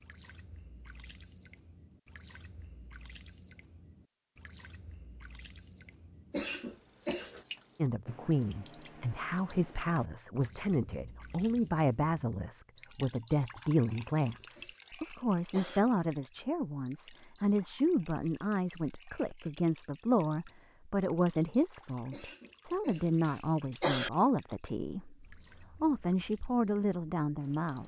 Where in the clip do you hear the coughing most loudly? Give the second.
24 s.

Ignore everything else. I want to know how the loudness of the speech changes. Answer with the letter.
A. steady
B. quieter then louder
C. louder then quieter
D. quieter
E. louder
A.